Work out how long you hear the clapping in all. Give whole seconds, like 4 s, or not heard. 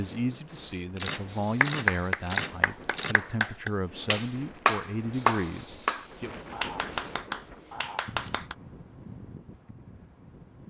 7 s.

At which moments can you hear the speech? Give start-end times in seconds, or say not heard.
0.0-6.4.